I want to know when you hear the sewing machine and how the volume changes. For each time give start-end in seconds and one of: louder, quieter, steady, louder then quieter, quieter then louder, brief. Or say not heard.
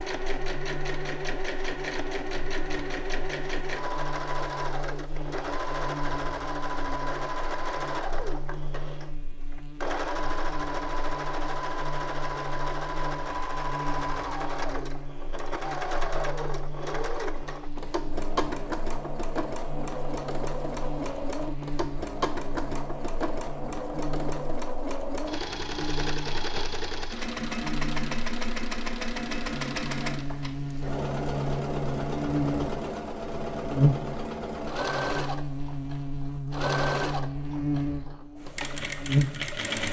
0.0-39.8 steady.